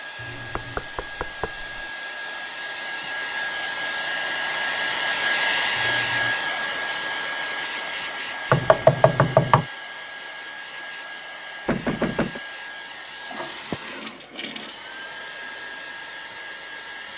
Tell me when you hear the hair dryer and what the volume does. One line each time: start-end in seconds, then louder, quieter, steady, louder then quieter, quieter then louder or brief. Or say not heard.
0.0-17.1 louder then quieter.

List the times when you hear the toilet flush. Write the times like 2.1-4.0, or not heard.
0.1-0.9, 5.8-6.4, 13.3-14.8.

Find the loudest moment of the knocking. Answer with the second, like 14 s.
9 s.